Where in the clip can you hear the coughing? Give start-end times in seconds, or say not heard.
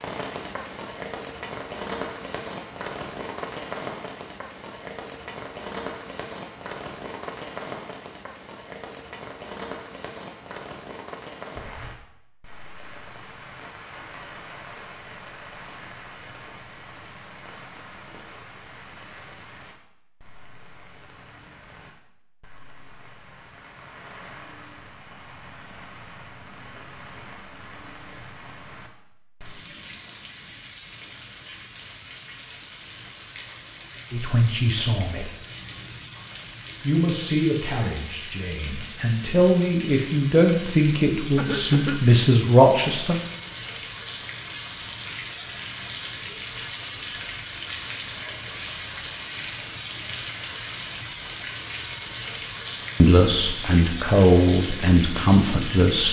41.4-42.1.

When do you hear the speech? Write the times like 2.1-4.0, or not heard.
34.1-35.3, 36.8-43.2, 53.0-56.0.